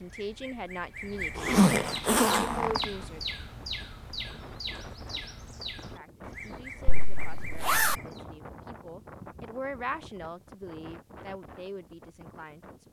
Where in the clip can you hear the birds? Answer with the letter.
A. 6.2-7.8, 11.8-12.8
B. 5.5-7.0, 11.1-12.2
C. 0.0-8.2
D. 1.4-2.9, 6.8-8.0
C.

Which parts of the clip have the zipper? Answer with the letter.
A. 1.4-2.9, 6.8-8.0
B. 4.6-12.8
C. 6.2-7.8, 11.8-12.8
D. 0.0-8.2
A.